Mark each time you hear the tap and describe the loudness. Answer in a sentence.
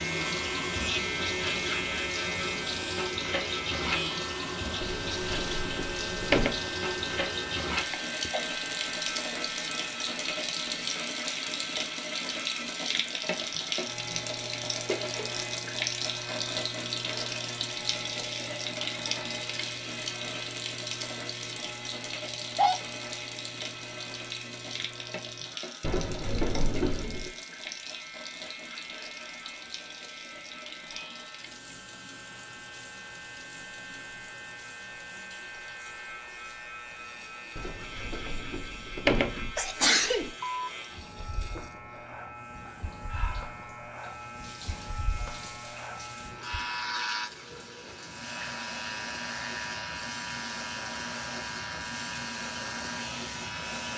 The tap can be heard from 0.0 to 53.9 s, getting quieter then louder.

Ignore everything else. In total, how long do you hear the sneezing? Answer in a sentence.
The sneezing can be heard for 2 seconds in total.